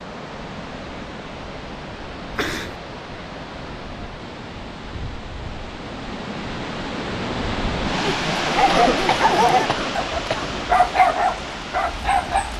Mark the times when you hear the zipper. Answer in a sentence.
The zipper can't be heard in this clip.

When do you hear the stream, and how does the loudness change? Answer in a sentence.
The stream can be heard from 0.0 to 12.5 s, getting louder then quieter.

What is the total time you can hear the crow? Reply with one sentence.
The crow can't be heard in this clip.